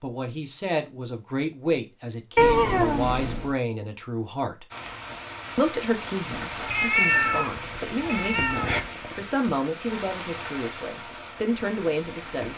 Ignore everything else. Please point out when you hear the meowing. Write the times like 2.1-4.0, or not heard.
2.4-3.5, 6.5-8.8.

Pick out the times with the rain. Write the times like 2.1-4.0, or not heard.
4.7-12.5.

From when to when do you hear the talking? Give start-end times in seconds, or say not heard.
0.0-4.7, 5.5-12.5.